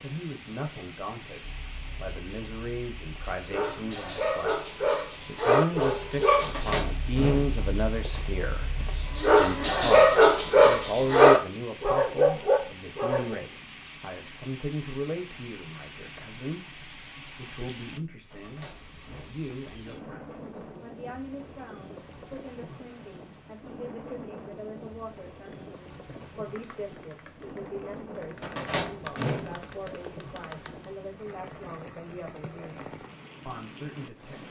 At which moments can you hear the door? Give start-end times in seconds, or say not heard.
6.4-8.1, 18.3-19.4, 28.4-30.1.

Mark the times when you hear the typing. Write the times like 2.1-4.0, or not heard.
25.5-30.9.